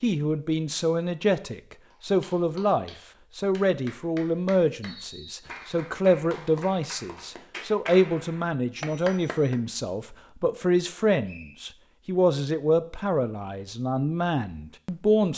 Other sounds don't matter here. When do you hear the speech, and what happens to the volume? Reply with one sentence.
The speech can be heard from 0.0 to 15.3 s, at a steady volume.